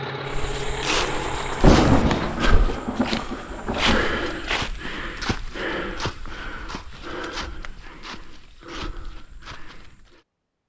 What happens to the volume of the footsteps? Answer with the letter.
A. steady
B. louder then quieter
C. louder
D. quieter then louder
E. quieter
E.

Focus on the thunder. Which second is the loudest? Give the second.
2 s.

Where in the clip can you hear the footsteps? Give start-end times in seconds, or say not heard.
0.2-10.2.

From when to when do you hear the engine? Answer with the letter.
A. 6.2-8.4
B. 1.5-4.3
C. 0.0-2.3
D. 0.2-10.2
C.